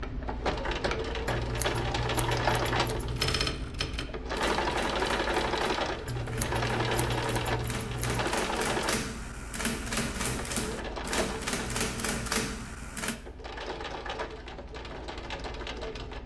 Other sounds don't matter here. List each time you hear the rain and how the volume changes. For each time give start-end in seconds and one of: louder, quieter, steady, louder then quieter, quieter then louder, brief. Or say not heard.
not heard.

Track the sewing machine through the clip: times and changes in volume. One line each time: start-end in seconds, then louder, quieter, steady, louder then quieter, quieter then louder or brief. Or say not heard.
0.0-16.2 quieter.